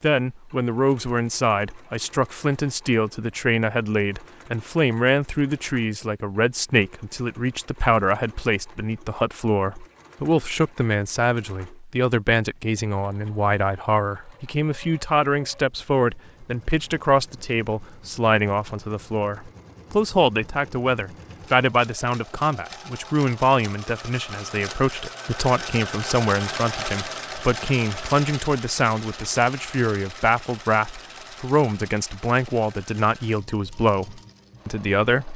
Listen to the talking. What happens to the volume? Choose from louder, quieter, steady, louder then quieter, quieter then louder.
steady.